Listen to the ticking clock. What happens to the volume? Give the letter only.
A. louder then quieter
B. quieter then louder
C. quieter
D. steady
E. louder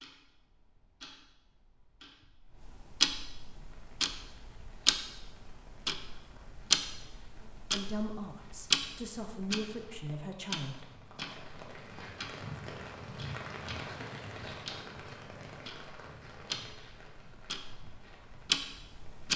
B.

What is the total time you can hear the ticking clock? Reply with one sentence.
You can hear the ticking clock for 19 seconds altogether.